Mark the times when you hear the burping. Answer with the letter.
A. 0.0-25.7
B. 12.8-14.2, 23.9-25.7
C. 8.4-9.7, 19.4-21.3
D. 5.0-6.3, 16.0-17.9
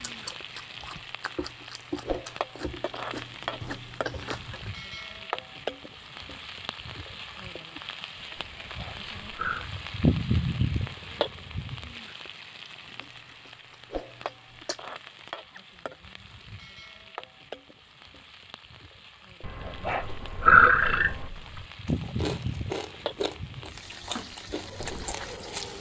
C.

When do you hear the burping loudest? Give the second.
21 s.